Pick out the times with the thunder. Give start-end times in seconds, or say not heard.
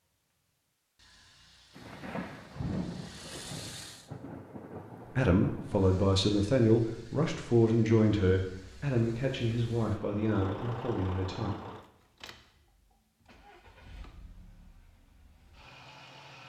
1.8-6.0.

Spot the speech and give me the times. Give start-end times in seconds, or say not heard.
5.2-11.5.